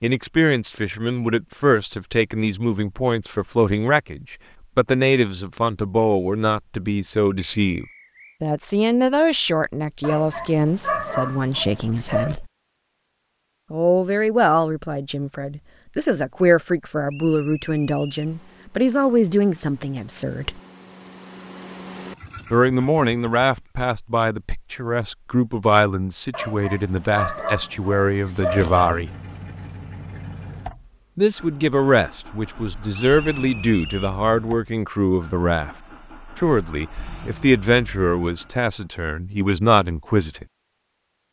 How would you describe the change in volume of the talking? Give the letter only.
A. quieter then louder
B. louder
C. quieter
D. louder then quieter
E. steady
E.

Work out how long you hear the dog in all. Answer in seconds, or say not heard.
5 s.